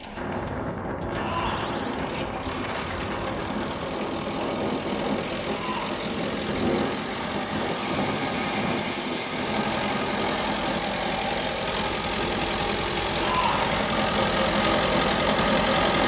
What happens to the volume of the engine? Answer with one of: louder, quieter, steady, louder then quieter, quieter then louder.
louder.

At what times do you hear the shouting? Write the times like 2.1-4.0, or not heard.
1.1-1.8, 5.5-6.0, 13.2-13.8.